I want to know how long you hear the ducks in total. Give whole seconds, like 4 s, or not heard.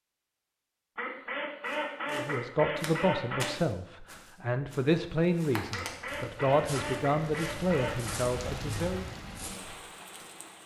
5 s.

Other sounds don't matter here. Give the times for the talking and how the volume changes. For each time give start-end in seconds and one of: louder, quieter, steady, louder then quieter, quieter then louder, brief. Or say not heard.
2.1-9.1 steady.